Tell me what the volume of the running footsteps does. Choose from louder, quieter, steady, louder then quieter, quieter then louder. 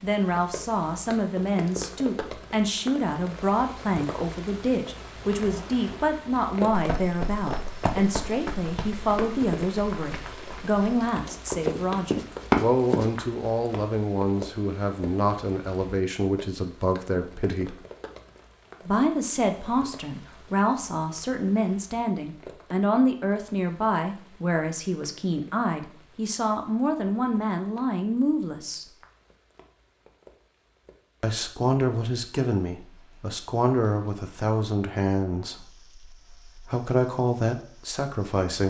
quieter then louder.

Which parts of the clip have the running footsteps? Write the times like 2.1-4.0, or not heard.
6.7-13.1.